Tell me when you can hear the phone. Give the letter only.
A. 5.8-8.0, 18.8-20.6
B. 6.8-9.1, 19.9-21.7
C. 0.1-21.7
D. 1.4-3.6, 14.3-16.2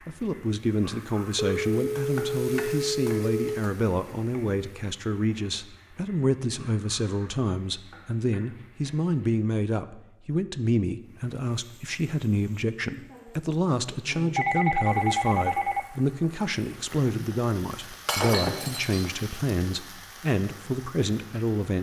D.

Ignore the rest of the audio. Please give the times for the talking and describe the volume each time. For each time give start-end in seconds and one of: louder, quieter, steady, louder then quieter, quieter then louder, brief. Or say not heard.
0.1-21.7 steady.